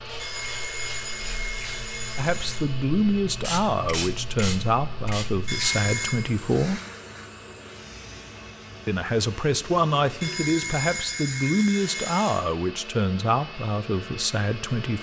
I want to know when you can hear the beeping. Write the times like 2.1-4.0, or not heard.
0.1-2.6, 5.5-6.2, 10.2-12.4.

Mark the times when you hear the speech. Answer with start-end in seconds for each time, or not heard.
2.1-6.8, 8.8-14.9.